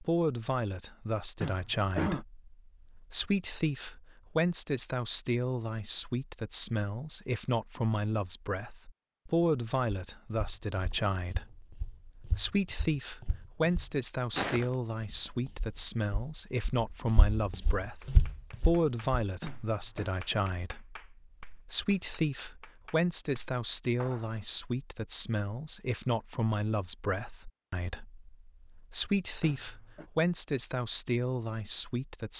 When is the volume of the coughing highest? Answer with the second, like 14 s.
2 s.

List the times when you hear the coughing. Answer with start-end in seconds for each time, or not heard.
1.4-2.2, 19.4-20.1, 29.4-30.1.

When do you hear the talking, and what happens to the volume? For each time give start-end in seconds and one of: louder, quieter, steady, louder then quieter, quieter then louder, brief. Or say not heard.
0.0-32.3 steady.